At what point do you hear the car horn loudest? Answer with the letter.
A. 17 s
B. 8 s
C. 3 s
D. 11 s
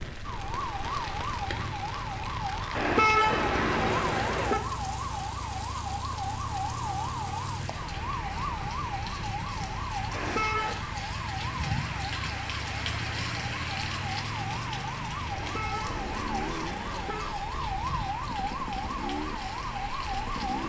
C.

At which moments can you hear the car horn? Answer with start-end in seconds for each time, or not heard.
2.8-4.6, 10.1-10.8, 15.3-17.4.